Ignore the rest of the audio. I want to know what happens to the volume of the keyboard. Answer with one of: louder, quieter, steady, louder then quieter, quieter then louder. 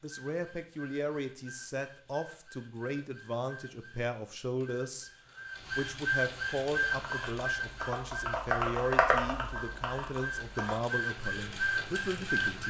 louder then quieter.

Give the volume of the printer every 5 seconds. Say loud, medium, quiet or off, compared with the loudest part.
quiet, loud, loud.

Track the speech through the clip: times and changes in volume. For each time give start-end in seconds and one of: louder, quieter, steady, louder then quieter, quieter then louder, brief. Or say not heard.
0.0-12.6 steady.